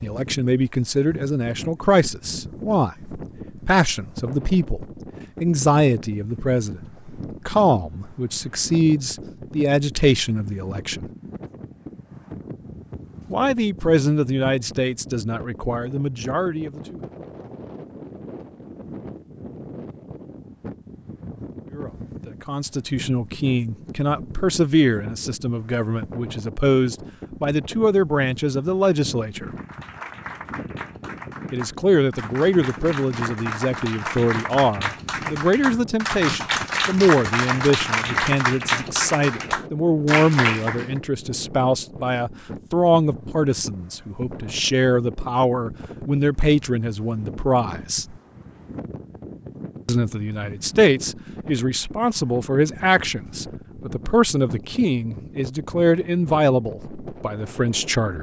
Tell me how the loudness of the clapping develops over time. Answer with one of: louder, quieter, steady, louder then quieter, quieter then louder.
louder.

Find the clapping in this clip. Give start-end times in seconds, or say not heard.
29.4-41.0.